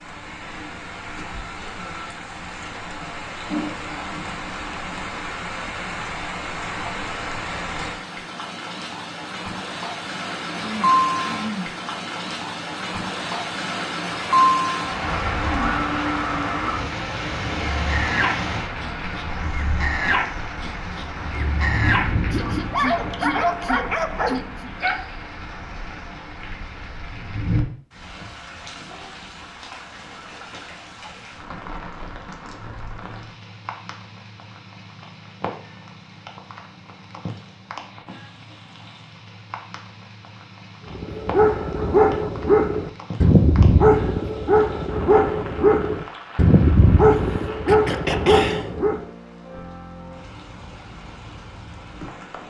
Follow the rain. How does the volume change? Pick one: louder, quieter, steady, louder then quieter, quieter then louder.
louder then quieter.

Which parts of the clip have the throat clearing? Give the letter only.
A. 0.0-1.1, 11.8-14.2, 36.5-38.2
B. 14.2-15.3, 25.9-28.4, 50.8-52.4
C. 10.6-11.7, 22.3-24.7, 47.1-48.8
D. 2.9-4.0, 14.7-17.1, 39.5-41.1
C.